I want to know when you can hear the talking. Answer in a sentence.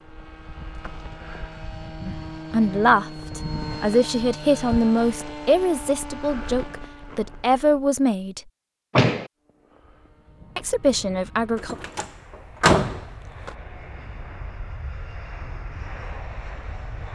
The talking can be heard from 2.0 to 8.4 s and from 10.6 to 11.8 s.